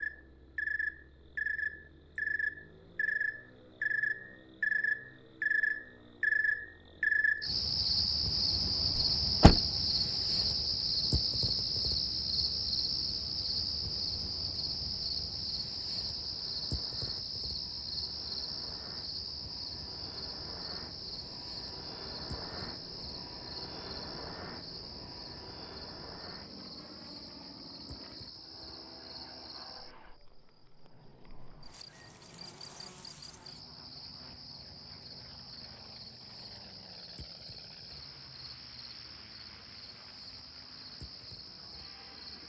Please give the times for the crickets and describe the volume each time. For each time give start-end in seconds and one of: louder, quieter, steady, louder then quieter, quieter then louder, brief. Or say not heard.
0.0-42.4 quieter.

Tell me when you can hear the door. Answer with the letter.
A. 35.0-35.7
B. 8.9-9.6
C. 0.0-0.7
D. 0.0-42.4
B.